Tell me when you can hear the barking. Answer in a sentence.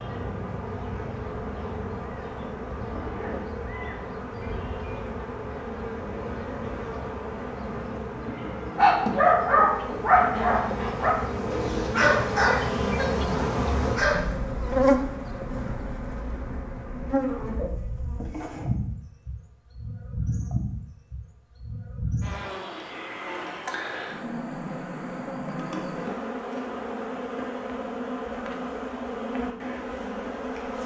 You can hear the barking from 8.8 to 14.3 s.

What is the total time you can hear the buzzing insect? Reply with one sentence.
You can hear the buzzing insect for 31 seconds altogether.